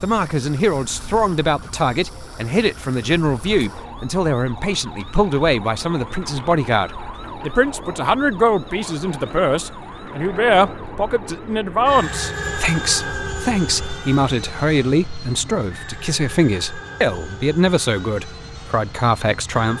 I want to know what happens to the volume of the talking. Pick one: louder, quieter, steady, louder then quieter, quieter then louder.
steady.